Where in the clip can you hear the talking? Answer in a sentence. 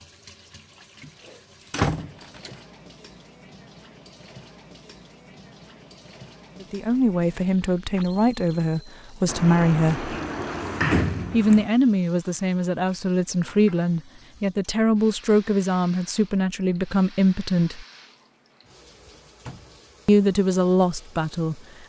The talking can be heard from 6.6 to 10.1 s, from 11.3 to 17.9 s and from 20.1 to 21.6 s.